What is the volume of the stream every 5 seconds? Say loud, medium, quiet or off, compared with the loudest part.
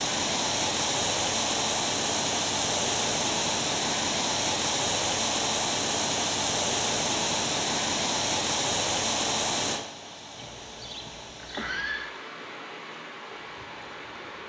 loud, loud, quiet.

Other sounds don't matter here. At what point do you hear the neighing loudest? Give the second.
12 s.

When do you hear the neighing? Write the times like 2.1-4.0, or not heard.
10.3-12.1.